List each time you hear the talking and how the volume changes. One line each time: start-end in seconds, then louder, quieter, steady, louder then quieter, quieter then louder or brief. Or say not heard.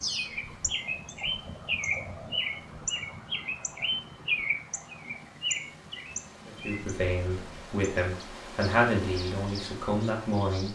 6.5-10.7 louder then quieter.